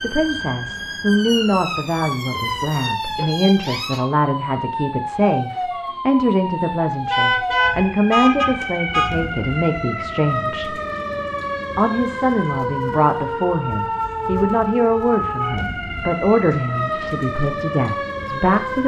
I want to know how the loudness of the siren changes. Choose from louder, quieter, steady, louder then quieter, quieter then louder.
steady.